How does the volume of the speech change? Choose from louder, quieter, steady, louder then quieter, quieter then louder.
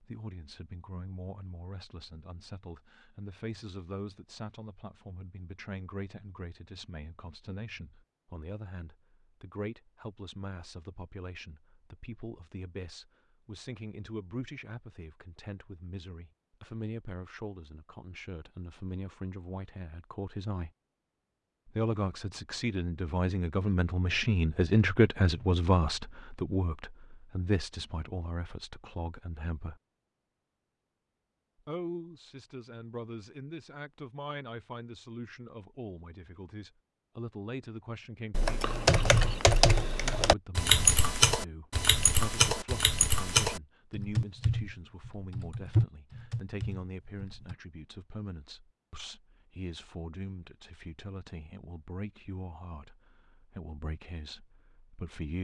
louder then quieter.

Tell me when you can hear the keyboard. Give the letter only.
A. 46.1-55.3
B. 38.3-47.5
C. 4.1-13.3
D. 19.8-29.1
B.